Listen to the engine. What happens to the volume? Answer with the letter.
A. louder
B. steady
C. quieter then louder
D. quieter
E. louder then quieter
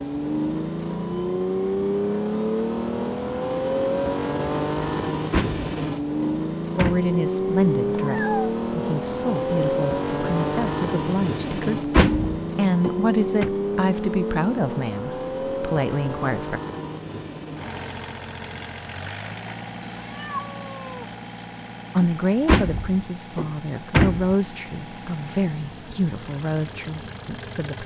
D.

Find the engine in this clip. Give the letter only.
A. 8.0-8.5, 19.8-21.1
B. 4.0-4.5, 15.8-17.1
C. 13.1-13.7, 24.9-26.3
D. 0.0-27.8
D.